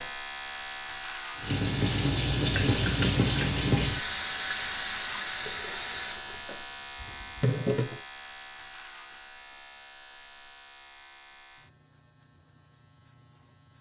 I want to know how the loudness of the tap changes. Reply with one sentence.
The loudness of the tap goes down.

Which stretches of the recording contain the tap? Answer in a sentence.
The tap can be heard from 1.4 to 8.0 s.